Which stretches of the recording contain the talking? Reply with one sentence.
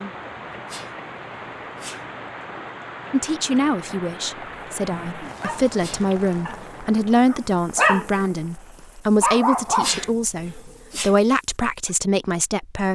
You can hear the talking from 3.1 to 12.9 s.